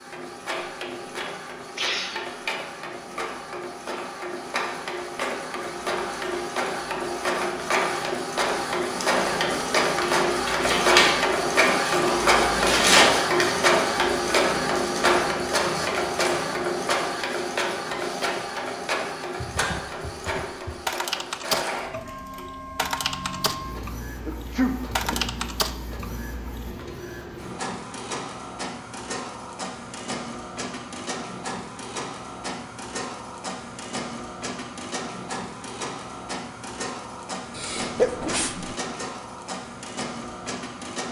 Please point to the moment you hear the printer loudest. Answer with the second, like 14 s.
13 s.